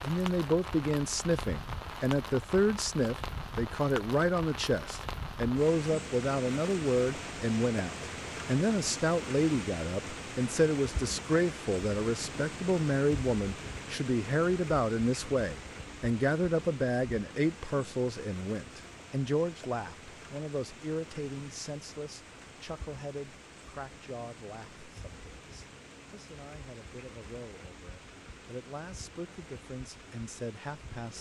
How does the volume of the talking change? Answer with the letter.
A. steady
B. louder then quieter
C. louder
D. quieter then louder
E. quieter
E.